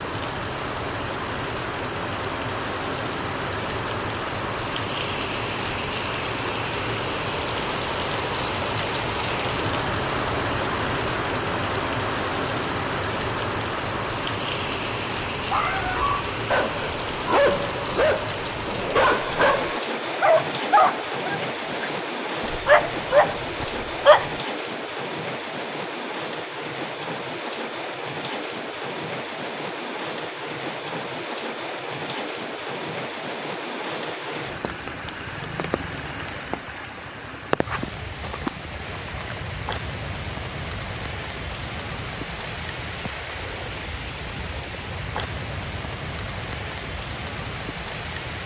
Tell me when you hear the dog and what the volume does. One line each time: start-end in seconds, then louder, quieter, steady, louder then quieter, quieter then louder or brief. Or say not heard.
15.4-24.4 steady.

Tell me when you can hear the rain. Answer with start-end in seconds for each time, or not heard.
0.0-48.4.